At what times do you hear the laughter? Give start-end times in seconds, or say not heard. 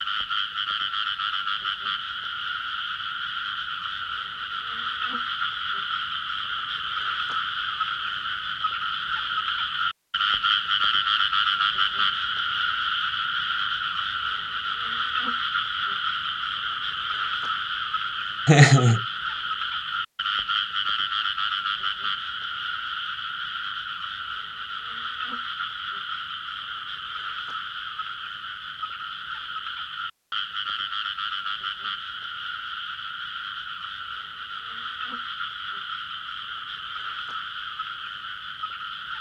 18.4-19.0.